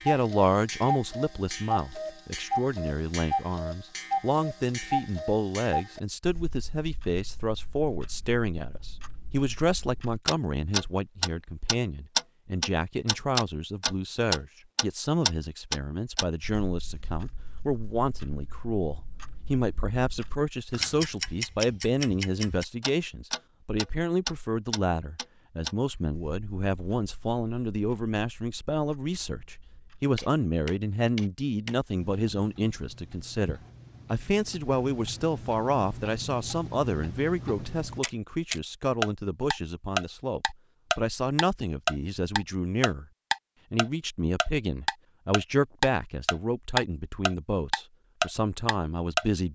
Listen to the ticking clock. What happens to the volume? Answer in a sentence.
The volume of the ticking clock goes down, then up.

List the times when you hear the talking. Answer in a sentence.
You can hear the talking from 0.1 to 43.0 s and from 43.7 to 49.5 s.